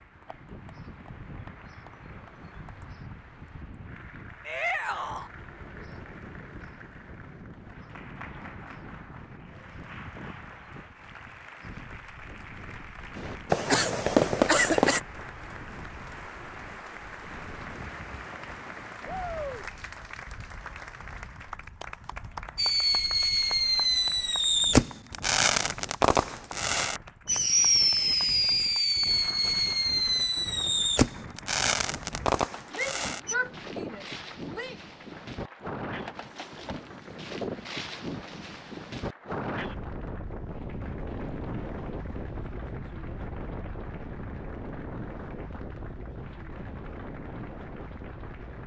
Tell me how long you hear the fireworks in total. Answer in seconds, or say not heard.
13 s.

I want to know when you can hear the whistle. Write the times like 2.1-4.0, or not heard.
not heard.